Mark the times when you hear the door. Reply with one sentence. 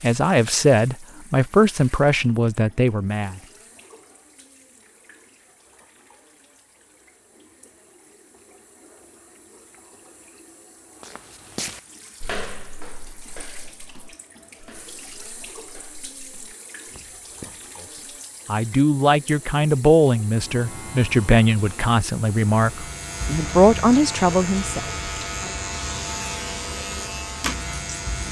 The door can't be heard in this clip.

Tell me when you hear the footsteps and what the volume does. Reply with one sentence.
The footsteps can be heard from 11.0 to 18.0 s, getting quieter then louder.